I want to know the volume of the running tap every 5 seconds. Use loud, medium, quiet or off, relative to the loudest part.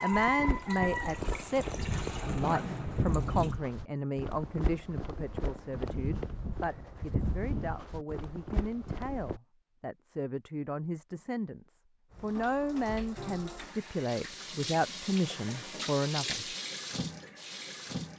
loud, off, medium, loud.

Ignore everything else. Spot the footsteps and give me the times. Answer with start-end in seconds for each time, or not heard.
0.1-9.4.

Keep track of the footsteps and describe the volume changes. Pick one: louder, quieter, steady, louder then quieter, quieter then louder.
steady.